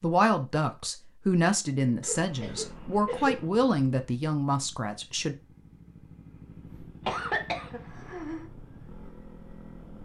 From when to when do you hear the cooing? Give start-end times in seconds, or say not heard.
not heard.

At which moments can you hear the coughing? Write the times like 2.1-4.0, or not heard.
2.0-3.5, 7.0-8.5.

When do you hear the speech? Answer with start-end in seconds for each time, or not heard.
0.0-5.3.